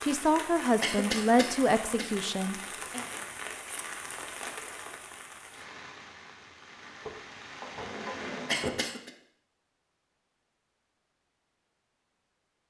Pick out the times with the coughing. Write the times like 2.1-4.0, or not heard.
0.8-2.1, 8.4-9.1.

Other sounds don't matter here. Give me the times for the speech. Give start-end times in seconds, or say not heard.
0.0-3.0.